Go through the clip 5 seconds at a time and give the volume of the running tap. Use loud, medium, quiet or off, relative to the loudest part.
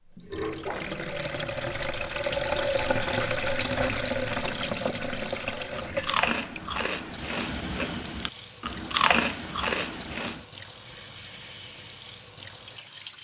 loud, medium, quiet.